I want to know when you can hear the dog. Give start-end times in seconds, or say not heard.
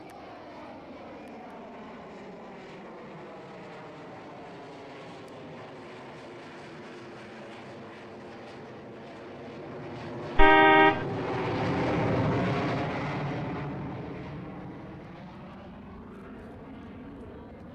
not heard.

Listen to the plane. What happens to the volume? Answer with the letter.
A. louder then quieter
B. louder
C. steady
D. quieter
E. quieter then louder
A.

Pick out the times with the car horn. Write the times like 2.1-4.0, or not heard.
10.3-11.1.